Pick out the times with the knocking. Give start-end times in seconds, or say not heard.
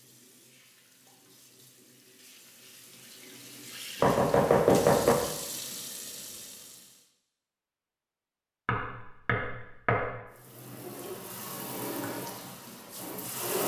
4.0-5.2, 8.7-10.1.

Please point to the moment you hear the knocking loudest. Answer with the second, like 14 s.
5 s.